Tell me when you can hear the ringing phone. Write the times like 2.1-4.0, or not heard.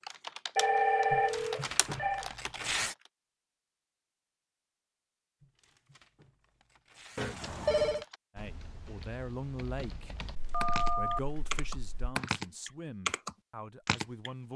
0.6-2.2, 7.2-8.1, 10.3-12.2.